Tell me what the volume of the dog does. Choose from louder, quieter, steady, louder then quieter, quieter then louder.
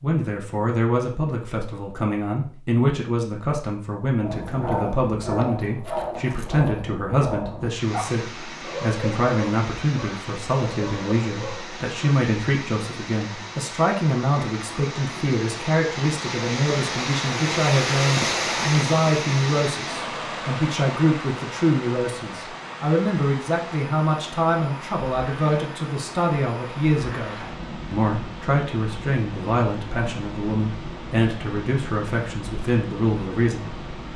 quieter.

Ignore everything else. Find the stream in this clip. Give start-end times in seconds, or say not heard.
7.7-34.1.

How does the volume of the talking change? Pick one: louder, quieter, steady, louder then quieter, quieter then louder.
steady.